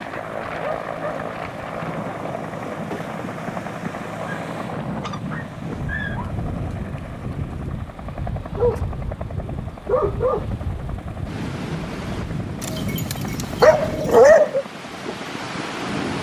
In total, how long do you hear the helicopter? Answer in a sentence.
You can hear the helicopter for 16 seconds altogether.